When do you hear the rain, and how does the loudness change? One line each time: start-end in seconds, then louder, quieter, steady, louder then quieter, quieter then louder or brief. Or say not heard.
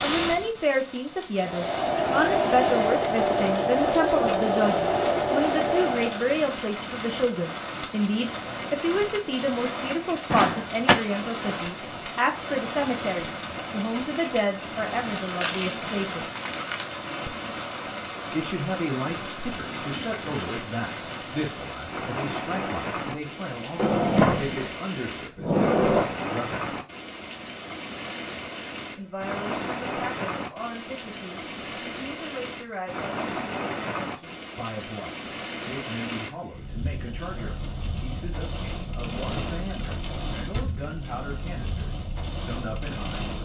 0.0-43.4 steady.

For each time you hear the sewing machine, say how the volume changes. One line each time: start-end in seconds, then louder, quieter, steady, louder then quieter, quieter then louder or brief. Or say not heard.
1.4-6.2 steady.